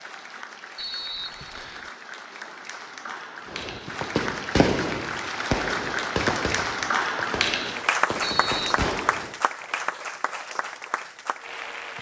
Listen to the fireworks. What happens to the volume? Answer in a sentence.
The volume of the fireworks goes down, then up.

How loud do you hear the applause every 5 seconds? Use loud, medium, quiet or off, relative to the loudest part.
medium, loud, medium.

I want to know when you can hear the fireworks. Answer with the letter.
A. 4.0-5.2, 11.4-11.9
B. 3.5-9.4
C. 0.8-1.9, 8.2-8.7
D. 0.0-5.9
B.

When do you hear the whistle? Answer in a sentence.
You can hear the whistle from 0.8 to 1.9 s and from 8.2 to 8.7 s.